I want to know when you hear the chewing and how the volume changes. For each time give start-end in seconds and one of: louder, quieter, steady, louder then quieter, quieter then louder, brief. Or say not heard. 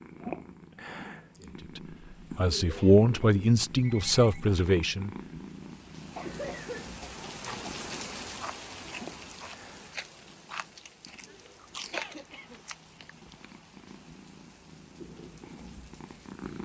7.3-13.6 louder then quieter.